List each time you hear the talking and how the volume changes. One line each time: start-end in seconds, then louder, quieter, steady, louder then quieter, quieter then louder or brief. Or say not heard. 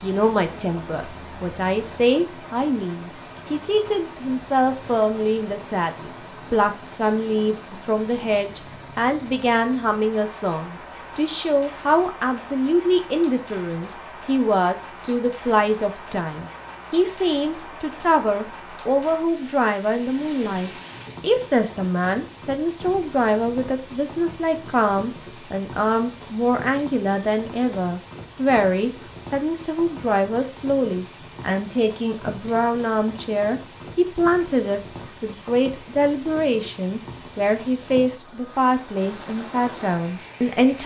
0.0-40.8 steady.